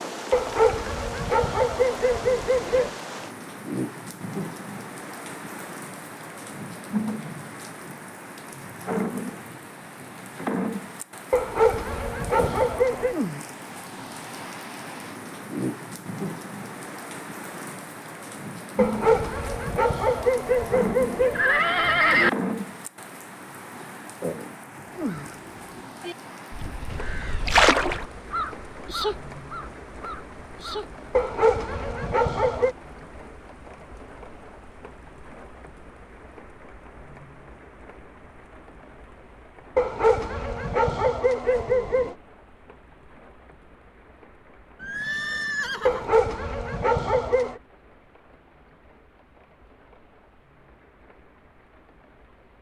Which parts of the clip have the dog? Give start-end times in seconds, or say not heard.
0.3-2.9, 11.3-13.2, 18.8-21.4, 31.1-32.8, 39.8-42.1, 45.9-47.6.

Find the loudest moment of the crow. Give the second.
28 s.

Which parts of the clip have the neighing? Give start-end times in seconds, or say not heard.
21.3-22.3, 44.8-46.1.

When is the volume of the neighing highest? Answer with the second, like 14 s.
22 s.